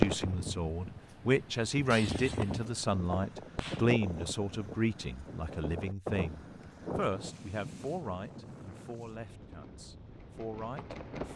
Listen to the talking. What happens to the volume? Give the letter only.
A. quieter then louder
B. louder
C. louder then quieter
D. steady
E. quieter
E.